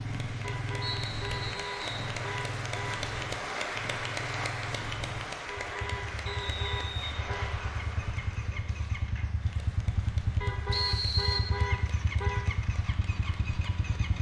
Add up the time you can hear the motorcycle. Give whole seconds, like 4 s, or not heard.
14 s.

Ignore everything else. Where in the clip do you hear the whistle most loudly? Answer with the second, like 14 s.
11 s.